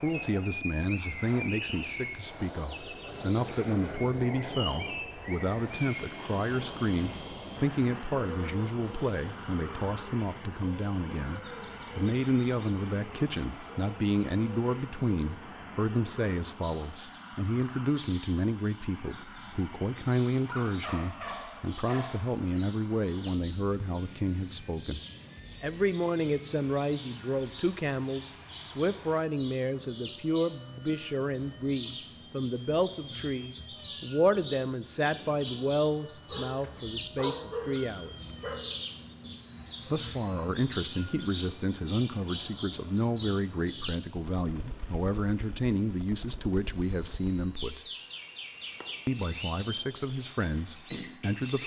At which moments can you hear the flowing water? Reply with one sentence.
You can't hear the flowing water here.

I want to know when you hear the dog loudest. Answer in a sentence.
The loudest moment of the dog is at 37 seconds.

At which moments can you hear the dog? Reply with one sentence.
The dog can be heard from 20.4 to 22.1 s and from 36.2 to 38.6 s.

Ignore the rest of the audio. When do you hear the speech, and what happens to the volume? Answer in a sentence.
The speech can be heard from 0.0 to 25.0 s, at a steady volume; from 25.6 to 38.1 s, at a steady volume; from 39.9 to 47.9 s, at a steady volume; and briefly from 49.0 to 51.6 s.